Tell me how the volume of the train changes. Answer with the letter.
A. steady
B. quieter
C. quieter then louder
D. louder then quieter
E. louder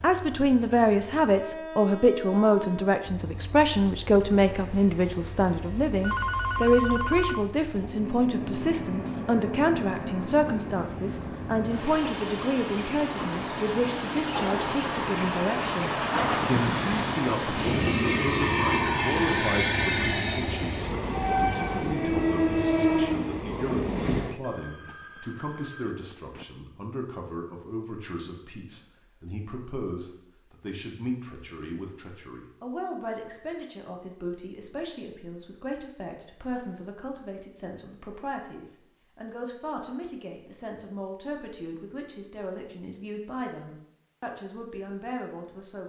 E.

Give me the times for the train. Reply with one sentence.
The train can be heard from 0.0 to 24.4 s.